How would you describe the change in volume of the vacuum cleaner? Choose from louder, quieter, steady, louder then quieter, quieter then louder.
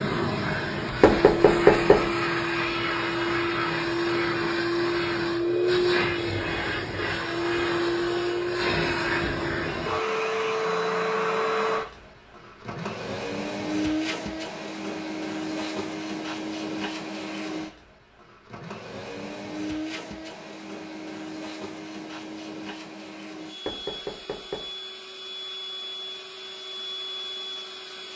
quieter.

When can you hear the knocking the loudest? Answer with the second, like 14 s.
2 s.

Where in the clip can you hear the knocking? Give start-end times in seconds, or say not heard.
1.0-2.1, 23.6-24.7.